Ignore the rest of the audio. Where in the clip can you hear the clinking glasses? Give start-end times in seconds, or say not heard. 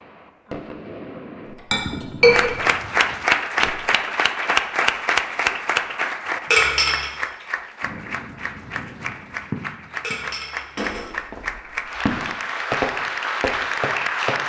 1.7-2.5, 6.5-7.1, 10.0-11.2.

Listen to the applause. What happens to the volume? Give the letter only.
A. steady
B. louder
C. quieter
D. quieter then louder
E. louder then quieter
D.